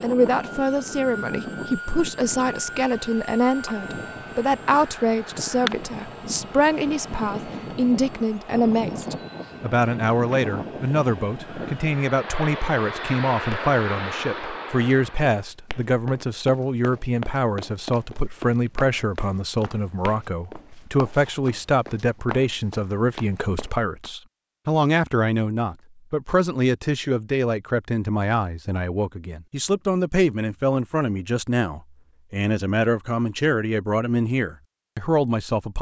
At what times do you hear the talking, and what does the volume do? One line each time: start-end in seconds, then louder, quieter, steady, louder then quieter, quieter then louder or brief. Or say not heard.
0.0-35.7 steady.